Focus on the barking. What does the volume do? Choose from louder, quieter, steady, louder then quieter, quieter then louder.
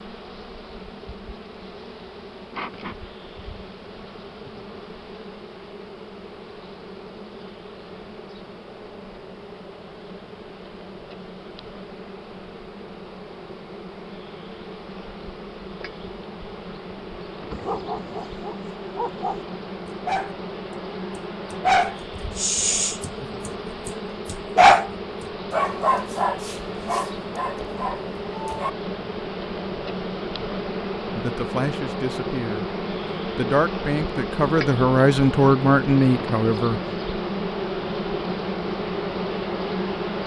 louder then quieter.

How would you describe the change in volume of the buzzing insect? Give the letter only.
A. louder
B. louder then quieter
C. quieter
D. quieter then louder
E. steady
A.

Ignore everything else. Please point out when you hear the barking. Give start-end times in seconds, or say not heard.
17.5-24.9, 25.5-28.7.